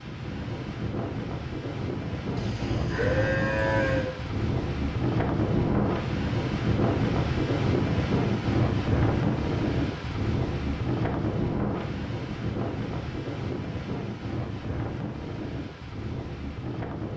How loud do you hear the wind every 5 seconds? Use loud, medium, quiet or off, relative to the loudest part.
medium, loud, medium, medium.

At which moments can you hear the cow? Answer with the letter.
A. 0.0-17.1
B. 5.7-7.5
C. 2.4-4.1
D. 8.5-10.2
C.